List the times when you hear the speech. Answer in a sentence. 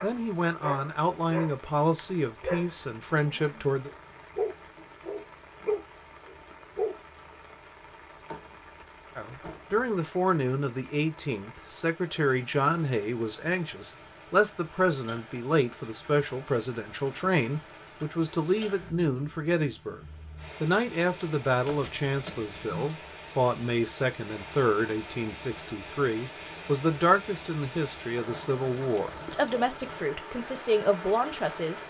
You can hear the speech from 0.0 to 3.9 s and from 9.2 to 31.8 s.